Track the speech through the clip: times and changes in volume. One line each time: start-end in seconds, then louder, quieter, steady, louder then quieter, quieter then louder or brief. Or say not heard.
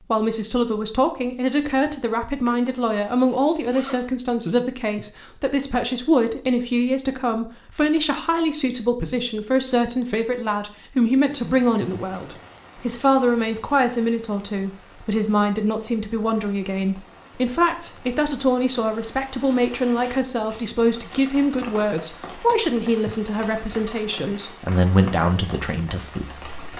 0.1-26.4 steady.